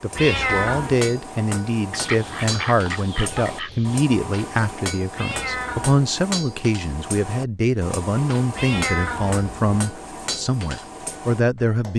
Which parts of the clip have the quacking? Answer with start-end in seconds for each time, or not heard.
1.9-4.0.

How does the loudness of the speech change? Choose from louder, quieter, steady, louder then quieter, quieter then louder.
steady.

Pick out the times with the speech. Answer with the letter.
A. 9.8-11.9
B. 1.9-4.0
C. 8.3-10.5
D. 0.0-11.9
D.